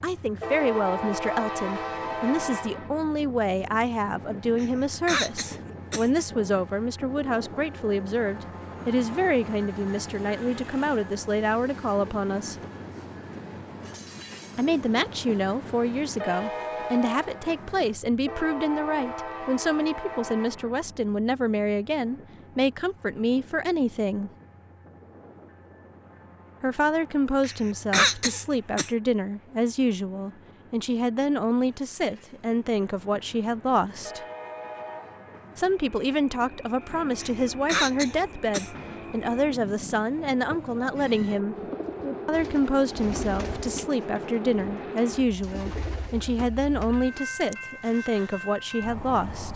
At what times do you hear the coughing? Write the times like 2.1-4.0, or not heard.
4.5-6.2, 27.4-28.9, 37.2-38.8.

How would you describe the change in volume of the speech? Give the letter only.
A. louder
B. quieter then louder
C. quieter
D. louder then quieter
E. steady
E.